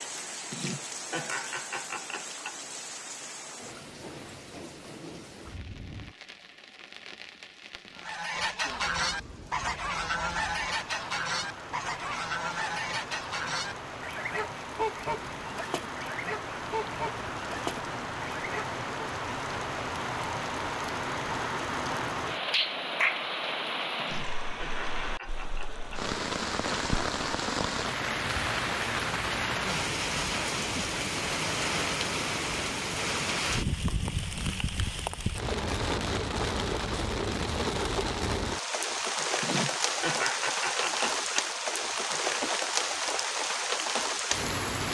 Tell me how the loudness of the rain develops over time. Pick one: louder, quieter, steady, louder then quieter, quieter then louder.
louder.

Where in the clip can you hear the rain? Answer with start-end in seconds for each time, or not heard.
0.0-44.8.